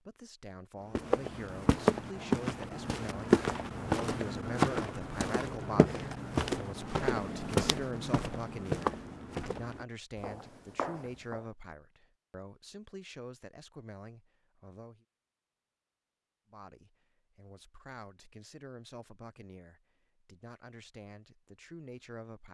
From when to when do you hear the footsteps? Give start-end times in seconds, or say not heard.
0.9-11.5.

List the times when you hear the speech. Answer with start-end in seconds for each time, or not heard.
0.0-15.1, 16.5-22.4.